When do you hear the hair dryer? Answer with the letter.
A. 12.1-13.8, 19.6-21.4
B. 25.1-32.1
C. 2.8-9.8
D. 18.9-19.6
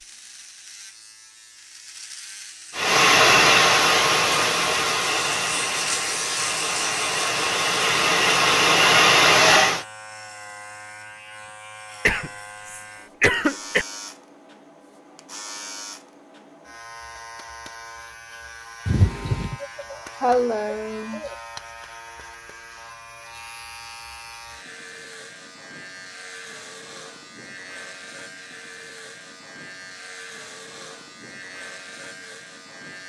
C.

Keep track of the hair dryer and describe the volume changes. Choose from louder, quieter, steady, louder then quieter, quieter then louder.
quieter then louder.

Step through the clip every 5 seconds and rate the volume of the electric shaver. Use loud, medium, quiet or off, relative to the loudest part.
quiet, loud, medium, medium, medium, medium, medium.